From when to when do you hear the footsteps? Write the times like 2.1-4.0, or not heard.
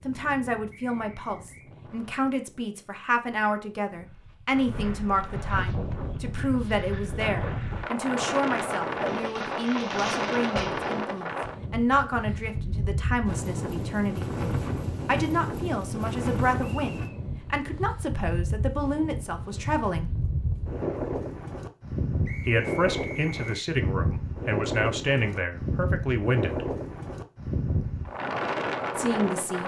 not heard.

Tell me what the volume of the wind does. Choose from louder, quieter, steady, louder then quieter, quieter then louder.
louder.